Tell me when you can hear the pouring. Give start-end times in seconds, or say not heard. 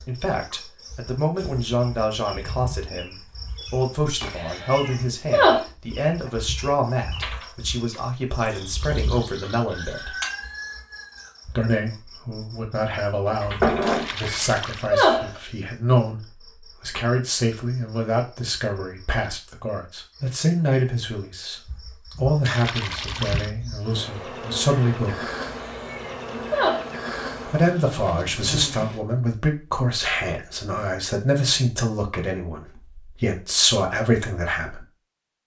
13.8-14.9, 22.4-23.5.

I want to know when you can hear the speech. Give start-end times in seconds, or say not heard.
0.0-10.2, 11.4-25.2, 27.4-34.9.